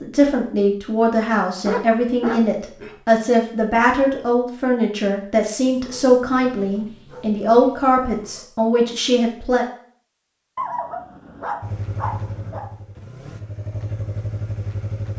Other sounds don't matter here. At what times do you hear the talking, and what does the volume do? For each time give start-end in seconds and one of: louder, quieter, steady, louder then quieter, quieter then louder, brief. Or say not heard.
0.0-9.7 steady.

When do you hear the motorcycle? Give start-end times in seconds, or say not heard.
11.6-15.1.